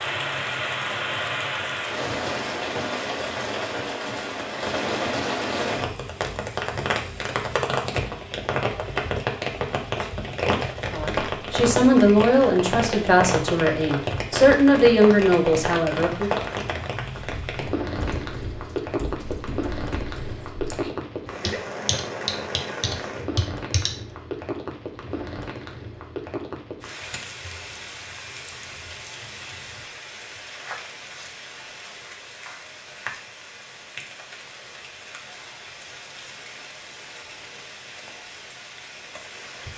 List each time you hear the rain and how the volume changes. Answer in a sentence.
The rain can be heard from 0.0 to 39.7 s, getting quieter.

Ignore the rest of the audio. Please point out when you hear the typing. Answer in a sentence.
You can hear the typing from 17.2 to 23.9 s.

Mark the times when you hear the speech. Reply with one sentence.
The speech can be heard from 10.9 to 16.3 s.